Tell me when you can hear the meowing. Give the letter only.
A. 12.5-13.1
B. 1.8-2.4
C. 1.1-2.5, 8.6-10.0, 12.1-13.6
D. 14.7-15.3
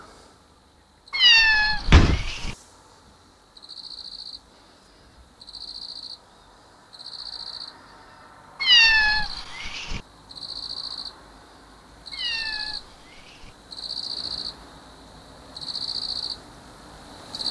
C.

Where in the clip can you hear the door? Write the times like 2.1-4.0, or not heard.
1.8-2.4.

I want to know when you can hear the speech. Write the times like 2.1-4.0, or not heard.
not heard.